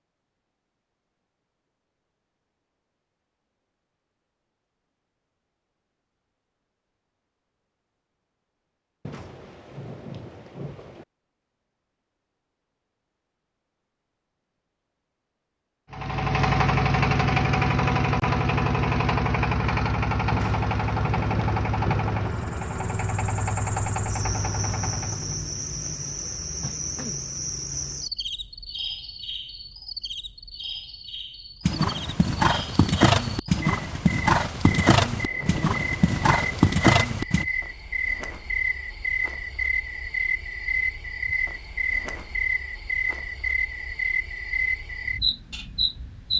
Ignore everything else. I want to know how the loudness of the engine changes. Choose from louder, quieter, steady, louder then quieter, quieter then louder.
quieter.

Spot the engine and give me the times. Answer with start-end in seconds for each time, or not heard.
15.9-25.4.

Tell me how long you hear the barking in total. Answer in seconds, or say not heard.
not heard.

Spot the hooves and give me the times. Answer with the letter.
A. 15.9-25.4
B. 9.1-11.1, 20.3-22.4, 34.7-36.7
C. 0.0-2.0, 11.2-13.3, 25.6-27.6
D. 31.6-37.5
D.